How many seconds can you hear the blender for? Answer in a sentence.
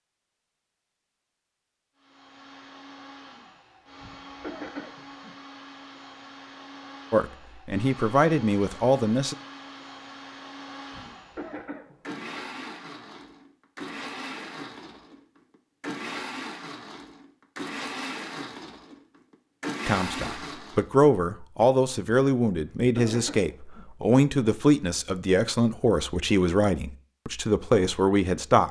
The blender can be heard for 19 seconds in total.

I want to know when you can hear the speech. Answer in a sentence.
The speech can be heard from 7.1 to 9.3 s and from 19.9 to 28.6 s.